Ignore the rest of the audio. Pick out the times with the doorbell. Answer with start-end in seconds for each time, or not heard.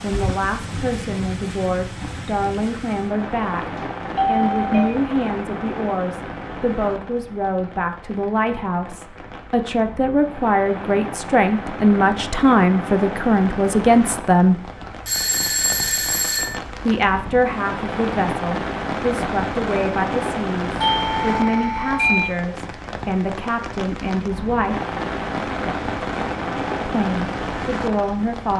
3.8-4.9, 15.1-16.6, 20.8-22.4.